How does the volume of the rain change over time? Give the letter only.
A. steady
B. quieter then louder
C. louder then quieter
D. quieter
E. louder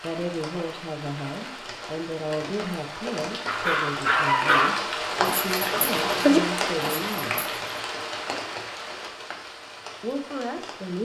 C.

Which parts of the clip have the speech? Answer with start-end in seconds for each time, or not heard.
0.0-7.5, 10.0-11.0.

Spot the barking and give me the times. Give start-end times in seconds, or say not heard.
3.5-7.8.